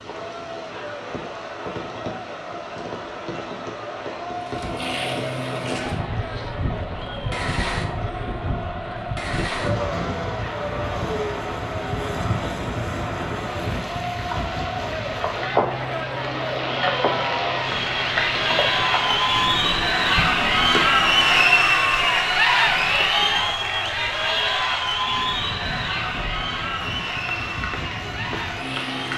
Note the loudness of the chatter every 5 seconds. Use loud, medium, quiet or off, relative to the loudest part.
quiet, quiet, quiet, medium, loud, medium.